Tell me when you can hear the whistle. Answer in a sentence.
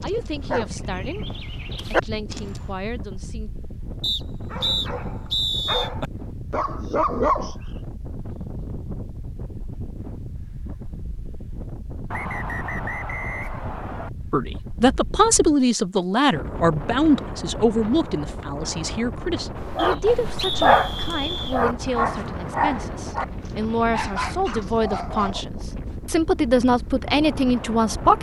The whistle can be heard from 4.0 to 5.9 s, from 12.1 to 14.1 s and from 19.8 to 21.6 s.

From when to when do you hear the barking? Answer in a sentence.
You can hear the barking from 0.0 to 2.6 s, from 4.5 to 7.5 s and from 19.6 to 25.9 s.